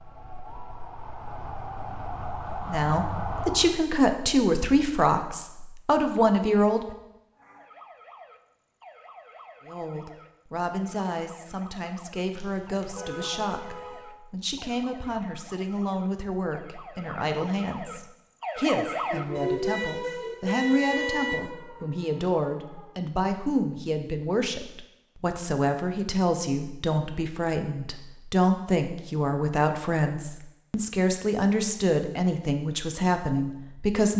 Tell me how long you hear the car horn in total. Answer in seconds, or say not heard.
4 s.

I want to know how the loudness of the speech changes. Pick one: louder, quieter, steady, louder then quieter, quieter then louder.
quieter then louder.